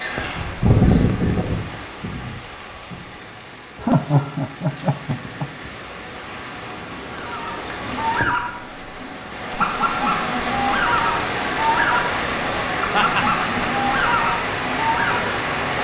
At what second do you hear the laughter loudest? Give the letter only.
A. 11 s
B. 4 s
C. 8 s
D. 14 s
B.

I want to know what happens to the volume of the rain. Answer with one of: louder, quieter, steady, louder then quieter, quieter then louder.
louder.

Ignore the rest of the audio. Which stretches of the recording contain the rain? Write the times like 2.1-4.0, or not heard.
0.0-15.7.